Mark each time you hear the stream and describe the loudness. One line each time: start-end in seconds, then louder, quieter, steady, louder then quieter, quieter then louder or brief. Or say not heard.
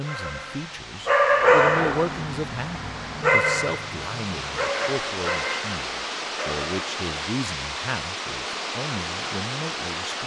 0.0-10.2 louder.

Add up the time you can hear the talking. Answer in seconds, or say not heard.
10 s.